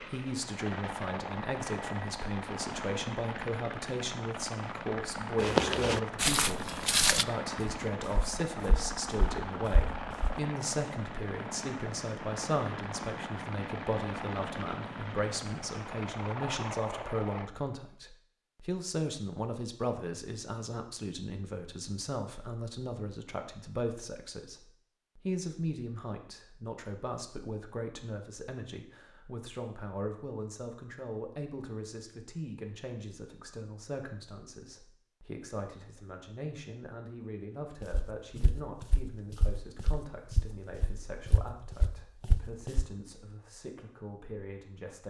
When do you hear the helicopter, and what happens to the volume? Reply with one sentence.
You can hear the helicopter from 0.0 to 17.5 s, at a steady volume.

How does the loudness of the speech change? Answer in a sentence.
The volume of the speech goes down.